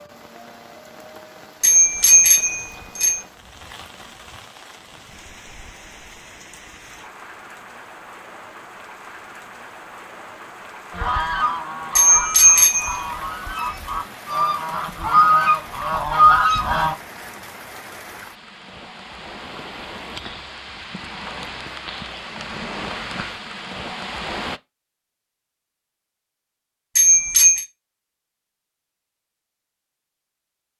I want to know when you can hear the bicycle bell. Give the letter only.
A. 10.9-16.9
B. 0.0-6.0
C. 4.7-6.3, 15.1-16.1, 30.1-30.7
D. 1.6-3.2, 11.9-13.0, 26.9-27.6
D.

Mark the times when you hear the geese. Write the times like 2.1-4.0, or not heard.
10.9-16.9.